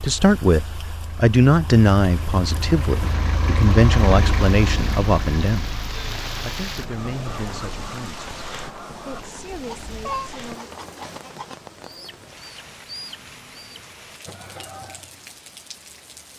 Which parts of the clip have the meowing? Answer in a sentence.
You can hear the meowing from 9.6 to 10.3 s.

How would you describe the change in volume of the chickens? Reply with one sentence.
The loudness of the chickens stays about the same.